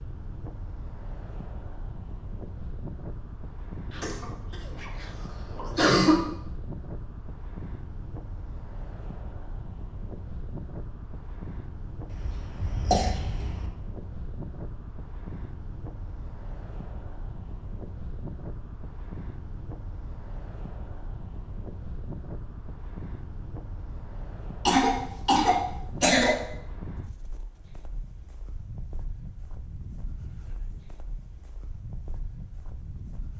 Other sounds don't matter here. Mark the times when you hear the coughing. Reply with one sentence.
You can hear the coughing from 3.9 to 6.2 s, from 12.1 to 13.7 s and from 24.6 to 26.4 s.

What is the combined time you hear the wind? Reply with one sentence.
The wind can be heard for 33 seconds in total.